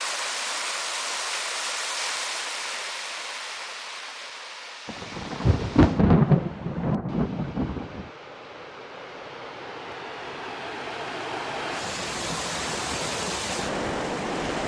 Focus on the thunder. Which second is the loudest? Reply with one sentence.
The volume of the thunder peaks at 6 seconds.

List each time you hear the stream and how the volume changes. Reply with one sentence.
The stream can be heard from 0.0 to 14.6 s, getting quieter then louder.